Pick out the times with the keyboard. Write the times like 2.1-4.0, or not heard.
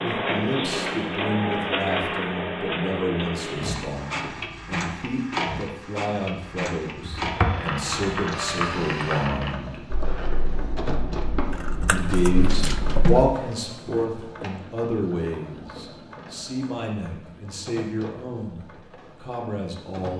7.0-13.0.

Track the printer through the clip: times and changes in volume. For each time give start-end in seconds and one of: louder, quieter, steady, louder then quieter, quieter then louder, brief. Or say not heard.
0.0-20.1 quieter.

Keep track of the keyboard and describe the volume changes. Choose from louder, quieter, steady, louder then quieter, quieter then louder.
quieter.